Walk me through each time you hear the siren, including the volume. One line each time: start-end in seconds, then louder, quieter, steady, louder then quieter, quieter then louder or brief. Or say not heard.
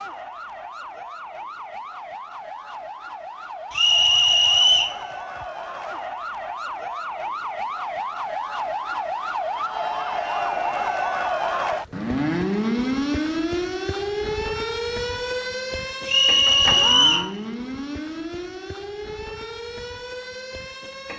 0.0-21.1 louder then quieter.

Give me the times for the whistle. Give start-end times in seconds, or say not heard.
3.7-5.0, 16.1-17.3.